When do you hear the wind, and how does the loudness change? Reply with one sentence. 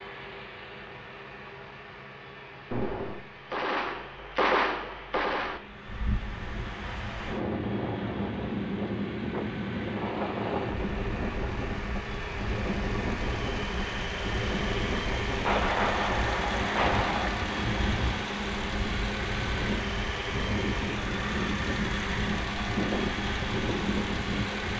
The wind can be heard from 5.7 to 24.7 s, at a steady volume.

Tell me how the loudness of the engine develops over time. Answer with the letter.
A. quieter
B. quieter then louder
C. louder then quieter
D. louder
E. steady
D.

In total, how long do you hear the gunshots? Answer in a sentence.
You can hear the gunshots for 5 seconds altogether.